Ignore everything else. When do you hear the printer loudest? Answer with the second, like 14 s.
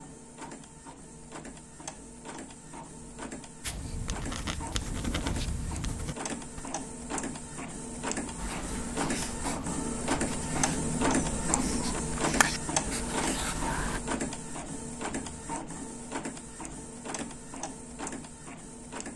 11 s.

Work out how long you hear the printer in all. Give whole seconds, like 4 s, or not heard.
19 s.